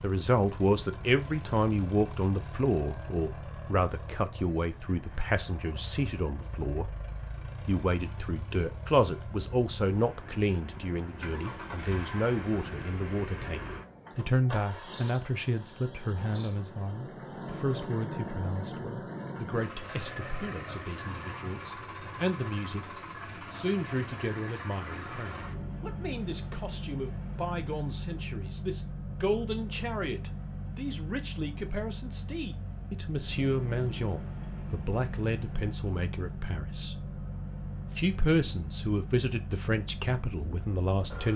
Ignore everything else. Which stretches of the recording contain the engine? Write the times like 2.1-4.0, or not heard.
0.0-41.3.